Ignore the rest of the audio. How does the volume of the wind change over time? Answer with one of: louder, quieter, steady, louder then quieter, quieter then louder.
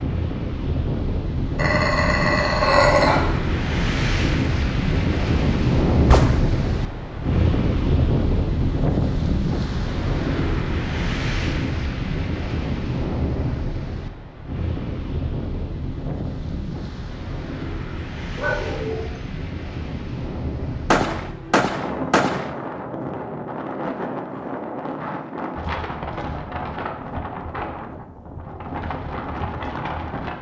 quieter.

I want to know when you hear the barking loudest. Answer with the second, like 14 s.
3 s.